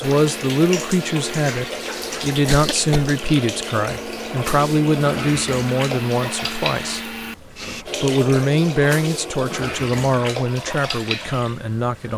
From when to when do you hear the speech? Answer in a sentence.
The speech can be heard from 0.0 to 7.1 s and from 8.0 to 12.1 s.